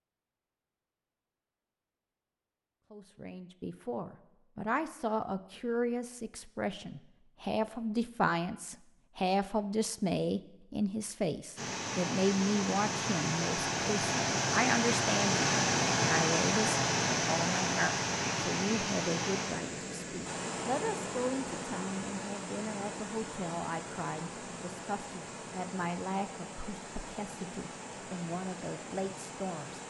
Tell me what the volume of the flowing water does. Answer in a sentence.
The loudness of the flowing water goes down.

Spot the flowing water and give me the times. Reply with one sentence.
The flowing water can be heard from 11.6 to 29.8 s.